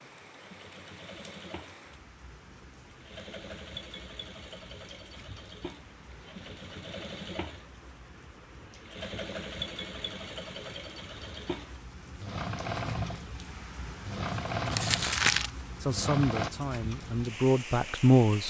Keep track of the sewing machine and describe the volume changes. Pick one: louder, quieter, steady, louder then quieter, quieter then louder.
louder.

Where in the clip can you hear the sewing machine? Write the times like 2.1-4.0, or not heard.
0.0-16.5.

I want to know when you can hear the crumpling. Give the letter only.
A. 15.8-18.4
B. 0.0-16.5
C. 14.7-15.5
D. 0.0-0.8
C.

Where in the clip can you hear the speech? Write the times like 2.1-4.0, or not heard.
15.8-18.4.